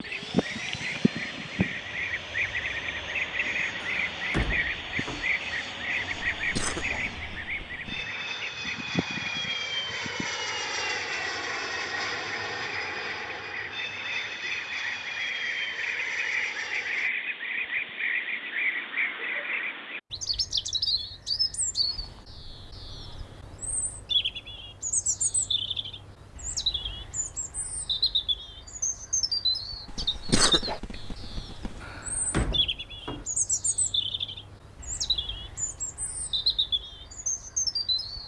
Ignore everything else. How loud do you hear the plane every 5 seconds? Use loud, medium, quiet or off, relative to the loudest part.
medium, loud, loud, medium, off, off, off, off.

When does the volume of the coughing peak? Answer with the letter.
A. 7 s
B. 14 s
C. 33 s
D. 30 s
D.